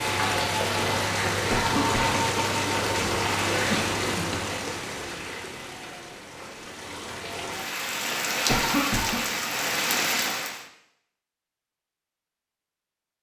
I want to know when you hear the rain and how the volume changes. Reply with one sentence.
The rain can be heard from 0.0 to 10.7 s, getting quieter then louder.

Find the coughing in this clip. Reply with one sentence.
You can hear the coughing from 1.5 to 2.2 s and from 8.4 to 9.2 s.